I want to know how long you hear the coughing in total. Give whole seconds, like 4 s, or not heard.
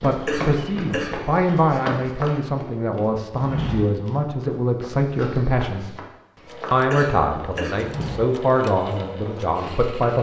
2 s.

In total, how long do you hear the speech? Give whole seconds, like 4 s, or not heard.
9 s.